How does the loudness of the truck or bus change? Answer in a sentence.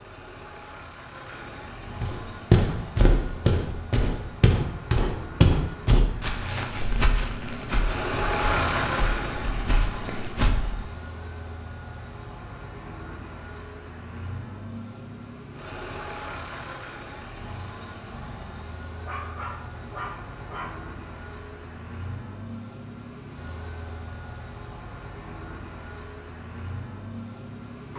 The loudness of the truck or bus goes up, then down.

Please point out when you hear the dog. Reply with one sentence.
The dog can be heard from 19.1 to 20.8 s.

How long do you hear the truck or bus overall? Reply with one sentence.
You can hear the truck or bus for 28 seconds altogether.